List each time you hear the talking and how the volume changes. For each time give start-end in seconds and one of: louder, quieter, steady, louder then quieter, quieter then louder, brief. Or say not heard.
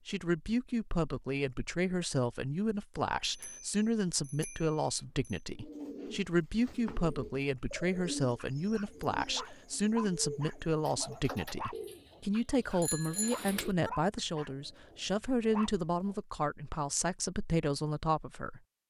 0.1-18.6 steady.